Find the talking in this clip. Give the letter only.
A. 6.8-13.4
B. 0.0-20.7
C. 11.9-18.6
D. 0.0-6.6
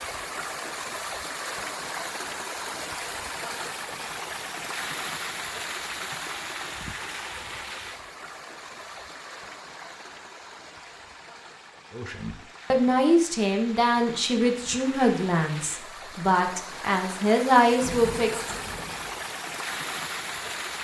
C.